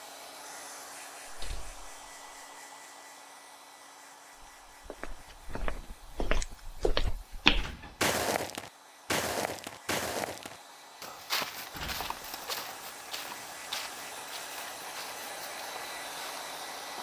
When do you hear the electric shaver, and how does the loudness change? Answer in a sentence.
The electric shaver can't be heard in this clip.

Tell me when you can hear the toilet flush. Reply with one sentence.
The toilet flush can't be heard in this clip.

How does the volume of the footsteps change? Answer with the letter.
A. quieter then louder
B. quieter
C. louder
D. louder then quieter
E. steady
D.